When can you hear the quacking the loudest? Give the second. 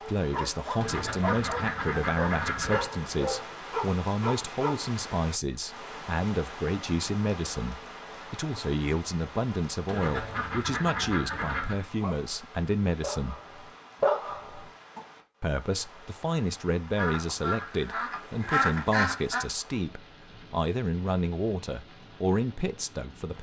19 s.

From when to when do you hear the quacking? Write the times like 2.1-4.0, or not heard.
0.8-2.8, 9.8-11.8, 16.9-19.4.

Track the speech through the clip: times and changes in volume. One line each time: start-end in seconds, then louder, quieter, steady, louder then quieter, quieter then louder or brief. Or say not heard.
0.1-13.3 steady
15.4-23.3 steady.